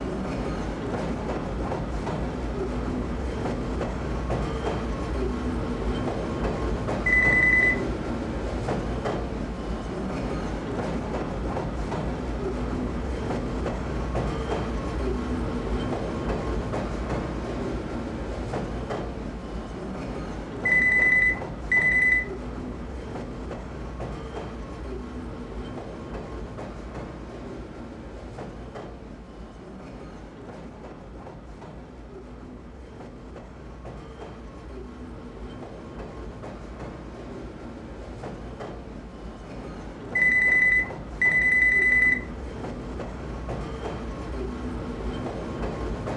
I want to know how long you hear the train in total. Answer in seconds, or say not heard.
46 s.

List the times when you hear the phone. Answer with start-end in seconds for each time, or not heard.
7.0-7.8, 20.6-22.2, 40.1-42.1.